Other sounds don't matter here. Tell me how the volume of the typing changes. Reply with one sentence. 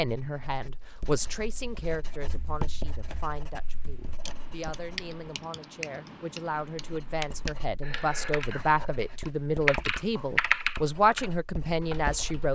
The loudness of the typing goes up.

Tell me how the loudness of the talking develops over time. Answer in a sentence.
The loudness of the talking goes down, then up.